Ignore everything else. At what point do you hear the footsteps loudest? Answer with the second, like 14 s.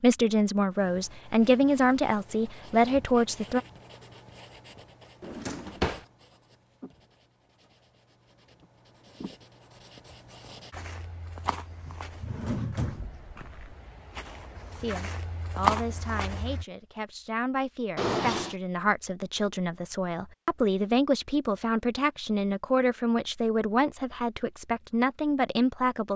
16 s.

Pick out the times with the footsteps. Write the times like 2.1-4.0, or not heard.
10.7-16.6.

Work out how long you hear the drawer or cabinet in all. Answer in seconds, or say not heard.
3 s.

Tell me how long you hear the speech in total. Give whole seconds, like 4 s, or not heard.
15 s.